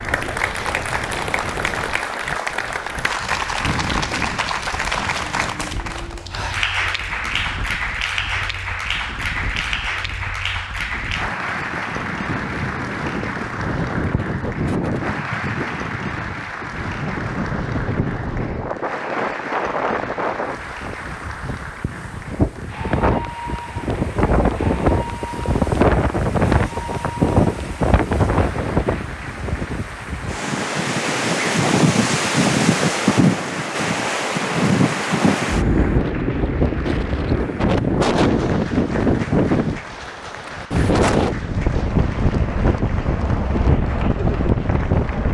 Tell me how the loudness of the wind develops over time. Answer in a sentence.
The loudness of the wind goes up.